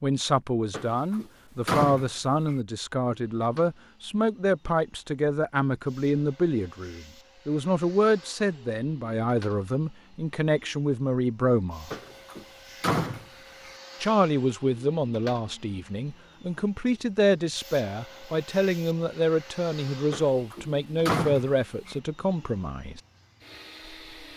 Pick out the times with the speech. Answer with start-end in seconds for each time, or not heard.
0.0-11.9, 14.0-23.0.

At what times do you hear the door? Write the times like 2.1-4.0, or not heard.
0.7-2.5, 11.9-13.7, 20.1-21.9.